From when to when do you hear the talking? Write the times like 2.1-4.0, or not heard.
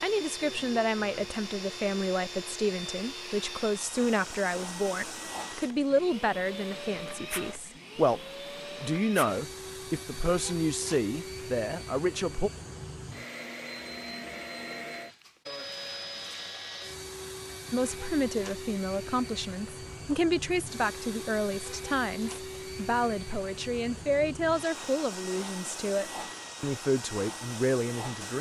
0.0-8.2, 8.8-12.5, 17.7-28.3.